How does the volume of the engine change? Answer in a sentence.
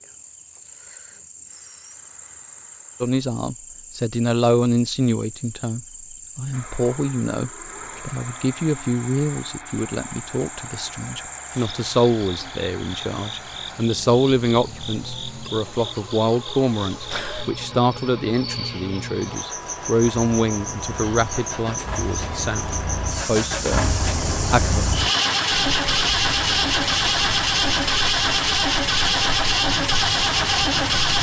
The volume of the engine goes up.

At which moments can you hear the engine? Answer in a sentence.
You can hear the engine from 6.5 to 31.1 s.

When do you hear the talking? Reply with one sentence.
The talking can be heard from 3.0 to 24.9 s.